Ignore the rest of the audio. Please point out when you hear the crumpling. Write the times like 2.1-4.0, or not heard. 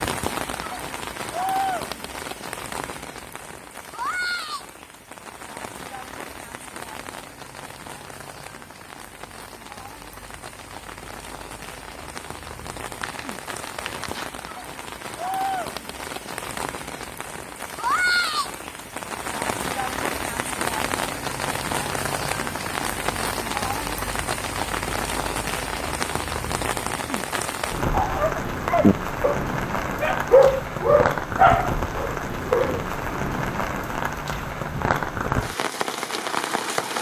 13.0-14.3.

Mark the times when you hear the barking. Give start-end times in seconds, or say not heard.
27.9-32.8.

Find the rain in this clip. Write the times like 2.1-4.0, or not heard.
0.0-36.9.